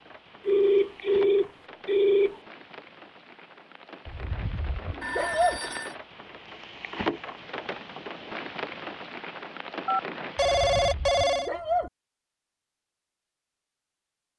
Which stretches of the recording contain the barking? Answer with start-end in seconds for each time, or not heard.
4.0-5.6, 10.3-11.9.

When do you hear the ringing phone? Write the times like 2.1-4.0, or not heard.
0.5-2.4, 5.0-6.0, 9.8-11.5.